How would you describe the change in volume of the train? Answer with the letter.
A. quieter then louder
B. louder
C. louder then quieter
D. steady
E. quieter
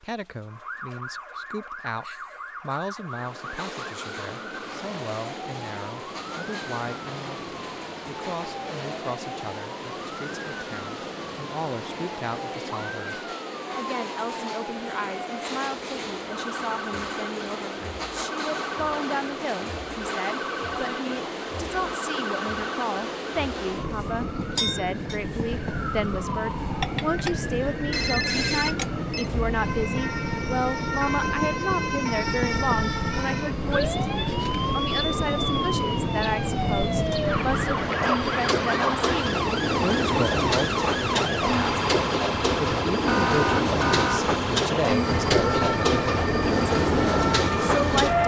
B.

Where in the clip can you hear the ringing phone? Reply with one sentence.
You can hear the ringing phone from 27.9 to 29.3 s.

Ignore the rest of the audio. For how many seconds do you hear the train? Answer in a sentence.
The train can be heard for 45 seconds in total.